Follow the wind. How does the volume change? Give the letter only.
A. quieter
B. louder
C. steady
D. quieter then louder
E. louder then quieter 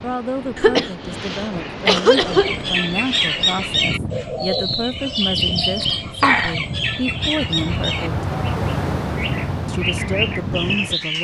B.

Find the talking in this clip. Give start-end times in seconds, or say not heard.
0.0-8.2, 9.7-11.1.